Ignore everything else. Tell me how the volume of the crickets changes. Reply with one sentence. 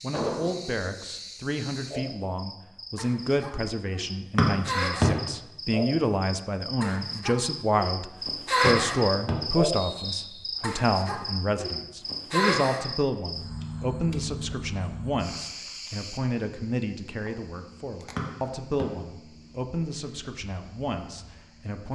The loudness of the crickets goes up, then down.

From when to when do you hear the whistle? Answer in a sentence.
The whistle can be heard from 4.3 to 5.0 s, from 8.7 to 10.5 s and from 18.1 to 18.9 s.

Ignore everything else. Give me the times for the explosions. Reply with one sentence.
The explosions can be heard from 0.1 to 0.6 s.